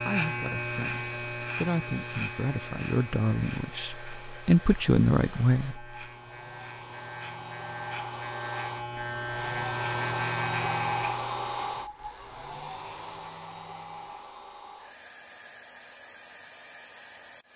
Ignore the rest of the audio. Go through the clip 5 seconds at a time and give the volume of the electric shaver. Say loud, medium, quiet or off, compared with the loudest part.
loud, loud, loud, off.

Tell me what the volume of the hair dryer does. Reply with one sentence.
The loudness of the hair dryer goes up, then down.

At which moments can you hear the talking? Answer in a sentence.
You can hear the talking from 0.0 to 5.8 s.